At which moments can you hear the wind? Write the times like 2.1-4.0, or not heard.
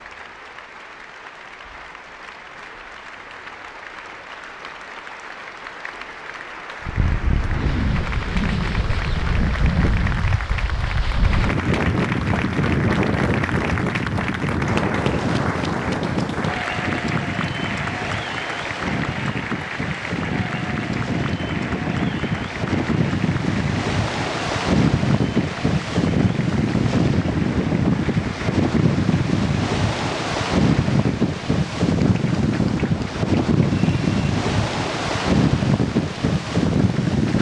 6.8-37.3.